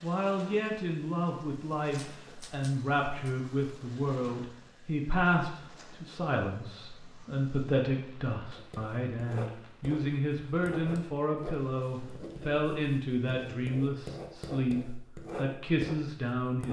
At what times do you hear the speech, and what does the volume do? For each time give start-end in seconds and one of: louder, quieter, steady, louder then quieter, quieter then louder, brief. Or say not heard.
0.0-16.6 steady.